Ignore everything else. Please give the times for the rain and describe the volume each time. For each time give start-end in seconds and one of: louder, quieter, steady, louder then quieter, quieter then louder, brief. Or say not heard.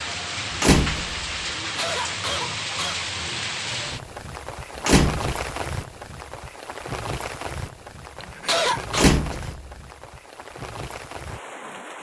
0.0-11.9 quieter.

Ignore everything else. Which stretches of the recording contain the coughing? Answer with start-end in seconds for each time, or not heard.
1.6-3.1, 8.2-9.1.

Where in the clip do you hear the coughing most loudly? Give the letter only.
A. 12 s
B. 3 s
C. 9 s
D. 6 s
C.